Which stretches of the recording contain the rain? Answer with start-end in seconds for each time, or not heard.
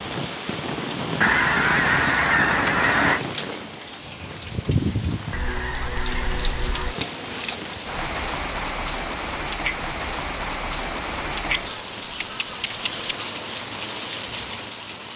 0.0-15.1.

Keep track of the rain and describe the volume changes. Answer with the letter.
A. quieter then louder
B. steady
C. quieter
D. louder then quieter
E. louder
B.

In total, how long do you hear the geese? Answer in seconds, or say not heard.
5 s.